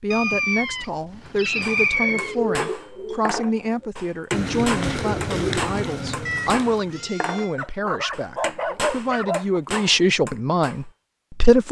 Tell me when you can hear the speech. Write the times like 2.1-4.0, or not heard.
0.0-11.6.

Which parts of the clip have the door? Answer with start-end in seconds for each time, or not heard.
not heard.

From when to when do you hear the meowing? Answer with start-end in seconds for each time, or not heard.
0.1-2.4, 6.2-7.5.